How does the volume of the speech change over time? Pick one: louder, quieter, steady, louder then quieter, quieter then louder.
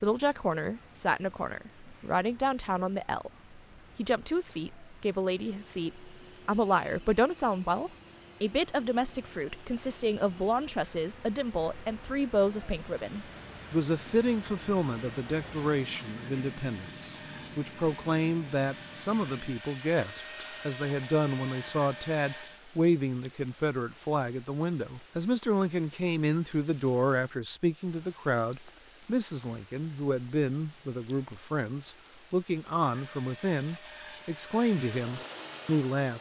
steady.